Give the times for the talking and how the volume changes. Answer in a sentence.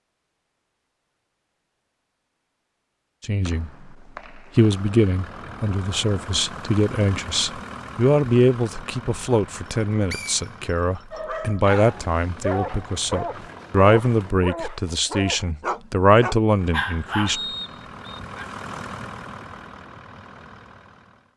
You can hear the talking briefly from 3.2 to 3.7 s; and from 4.5 to 17.4 s, at a steady volume.